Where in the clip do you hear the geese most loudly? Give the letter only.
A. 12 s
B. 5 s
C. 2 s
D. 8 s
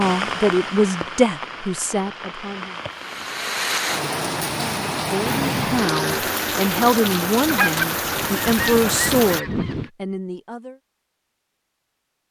D.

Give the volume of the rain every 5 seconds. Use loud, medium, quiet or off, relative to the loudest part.
loud, loud, off.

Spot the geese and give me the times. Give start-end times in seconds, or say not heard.
7.5-9.9.